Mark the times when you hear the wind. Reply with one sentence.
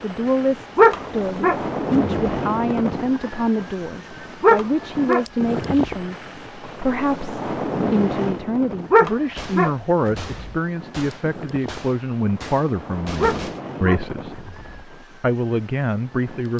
The wind can be heard from 0.0 to 16.5 s.